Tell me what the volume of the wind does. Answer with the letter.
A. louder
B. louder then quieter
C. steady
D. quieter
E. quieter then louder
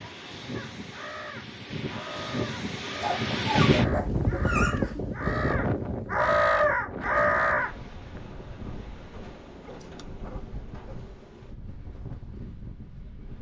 B.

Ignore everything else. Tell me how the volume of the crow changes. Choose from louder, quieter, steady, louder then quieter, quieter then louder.
louder.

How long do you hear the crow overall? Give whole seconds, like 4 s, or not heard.
7 s.